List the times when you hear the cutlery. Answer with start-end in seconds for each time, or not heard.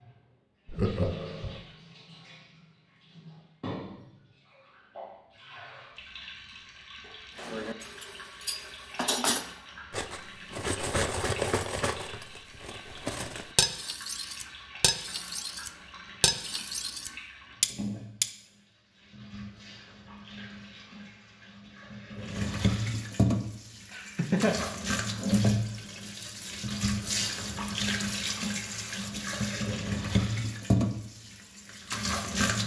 7.3-18.3.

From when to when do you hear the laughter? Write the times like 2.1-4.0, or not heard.
0.7-1.6, 23.9-24.6.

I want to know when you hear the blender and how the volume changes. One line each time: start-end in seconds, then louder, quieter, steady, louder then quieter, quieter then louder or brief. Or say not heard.
not heard.